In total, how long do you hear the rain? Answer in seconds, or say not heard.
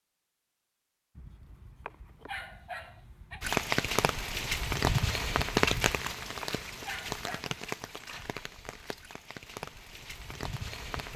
8 s.